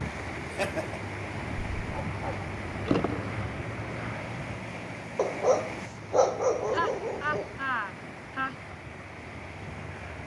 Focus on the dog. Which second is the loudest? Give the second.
6 s.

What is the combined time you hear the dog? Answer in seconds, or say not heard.
4 s.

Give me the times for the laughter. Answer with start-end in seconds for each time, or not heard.
0.5-1.0, 6.7-8.6.